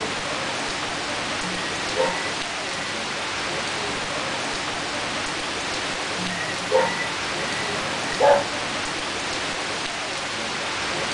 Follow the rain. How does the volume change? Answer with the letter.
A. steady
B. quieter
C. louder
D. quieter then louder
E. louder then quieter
A.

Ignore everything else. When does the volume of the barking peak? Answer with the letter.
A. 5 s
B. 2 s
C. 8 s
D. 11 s
C.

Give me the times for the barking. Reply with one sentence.
The barking can be heard from 1.4 to 3.0 s and from 6.2 to 8.5 s.